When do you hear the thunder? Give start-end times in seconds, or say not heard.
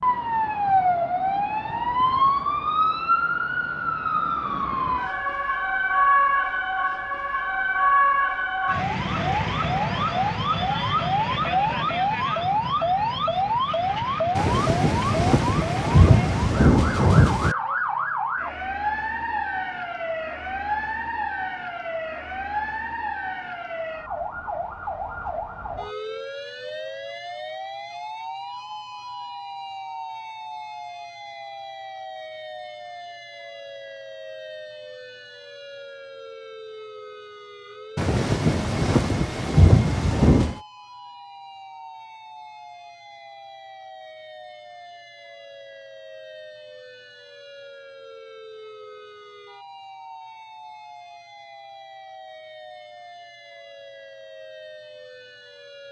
14.3-17.6, 38.0-40.5.